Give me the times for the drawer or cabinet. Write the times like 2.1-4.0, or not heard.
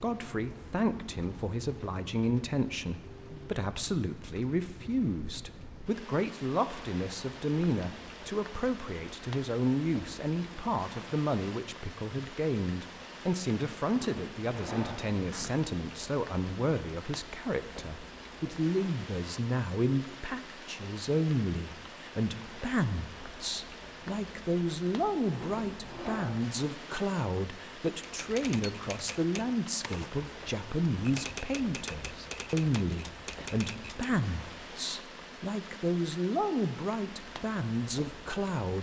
13.9-15.6, 25.3-26.4.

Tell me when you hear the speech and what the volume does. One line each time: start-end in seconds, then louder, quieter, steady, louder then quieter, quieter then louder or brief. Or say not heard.
0.0-38.7 steady.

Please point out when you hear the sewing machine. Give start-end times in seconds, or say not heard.
not heard.